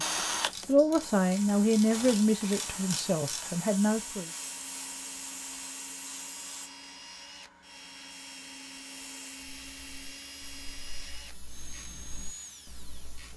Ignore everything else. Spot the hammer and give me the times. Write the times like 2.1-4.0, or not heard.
not heard.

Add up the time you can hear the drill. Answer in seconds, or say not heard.
13 s.